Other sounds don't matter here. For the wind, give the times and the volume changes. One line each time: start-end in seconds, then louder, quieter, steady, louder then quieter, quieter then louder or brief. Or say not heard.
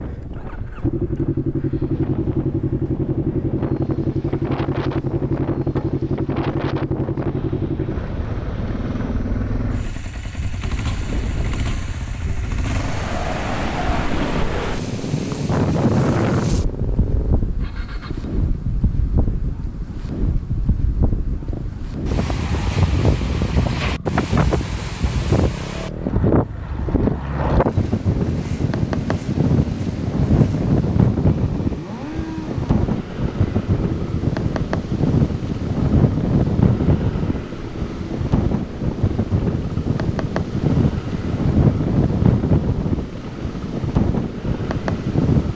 0.0-45.5 louder.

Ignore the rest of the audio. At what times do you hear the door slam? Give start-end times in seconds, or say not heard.
not heard.